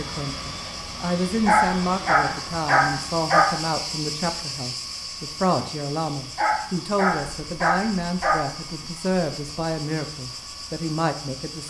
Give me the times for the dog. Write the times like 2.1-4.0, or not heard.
1.4-3.5, 6.3-8.3.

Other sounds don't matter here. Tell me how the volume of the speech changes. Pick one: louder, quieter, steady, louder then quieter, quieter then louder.
steady.